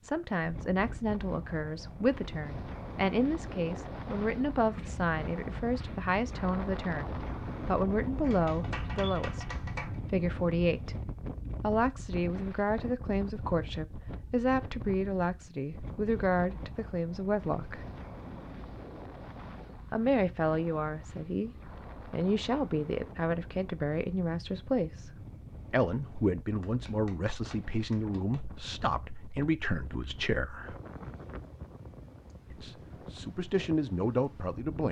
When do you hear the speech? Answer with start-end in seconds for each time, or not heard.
0.0-10.9, 11.6-17.9, 19.9-30.8, 32.5-34.8.